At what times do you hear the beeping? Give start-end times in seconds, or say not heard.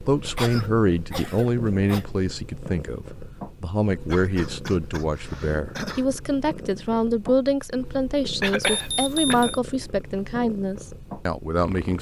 8.6-9.6.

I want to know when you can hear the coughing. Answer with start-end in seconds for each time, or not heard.
0.3-2.0, 4.0-6.0, 8.4-9.6.